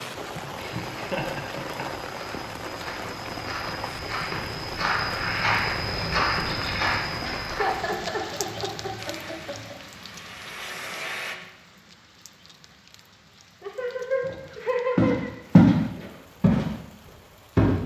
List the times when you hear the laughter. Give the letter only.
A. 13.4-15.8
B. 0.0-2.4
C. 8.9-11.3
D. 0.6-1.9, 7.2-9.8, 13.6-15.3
D.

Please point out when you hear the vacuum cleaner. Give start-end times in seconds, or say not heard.
8.9-11.3.